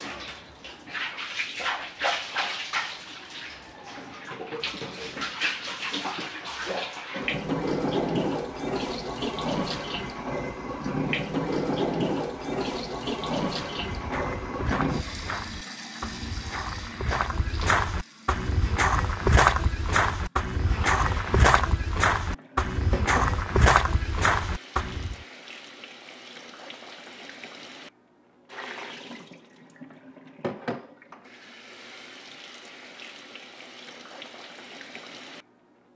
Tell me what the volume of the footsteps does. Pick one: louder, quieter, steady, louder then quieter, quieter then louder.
louder.